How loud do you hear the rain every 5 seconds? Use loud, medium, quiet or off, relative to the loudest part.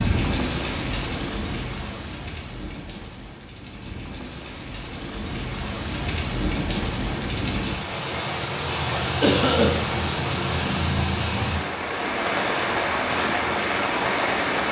medium, loud, loud.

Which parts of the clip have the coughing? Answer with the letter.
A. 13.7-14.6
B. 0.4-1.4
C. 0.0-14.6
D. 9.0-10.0
D.